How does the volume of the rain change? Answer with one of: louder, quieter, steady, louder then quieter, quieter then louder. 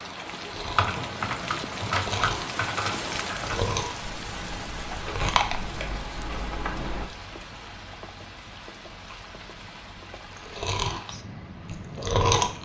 quieter.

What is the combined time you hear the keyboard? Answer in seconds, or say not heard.
6 s.